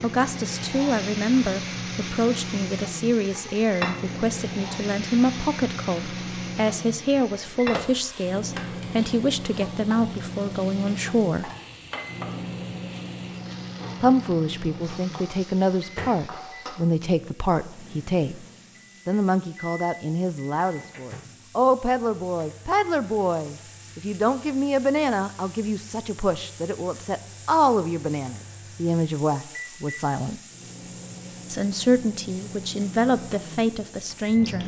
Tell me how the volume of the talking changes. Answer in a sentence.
The volume of the talking stays about the same.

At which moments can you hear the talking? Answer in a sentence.
The talking can be heard from 0.0 to 11.5 s, from 14.0 to 18.4 s, from 19.1 to 30.4 s and from 31.5 to 34.6 s.